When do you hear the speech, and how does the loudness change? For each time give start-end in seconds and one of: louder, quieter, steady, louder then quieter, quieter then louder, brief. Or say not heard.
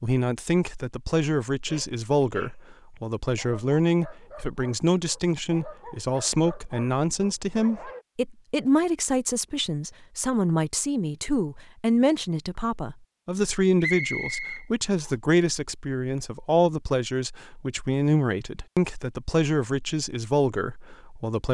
0.0-21.5 steady.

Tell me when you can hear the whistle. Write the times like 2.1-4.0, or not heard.
13.8-15.1.